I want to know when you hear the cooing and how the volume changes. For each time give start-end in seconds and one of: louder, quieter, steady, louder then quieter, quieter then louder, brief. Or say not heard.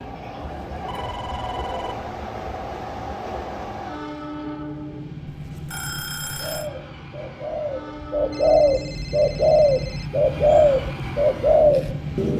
6.3-12.3 louder.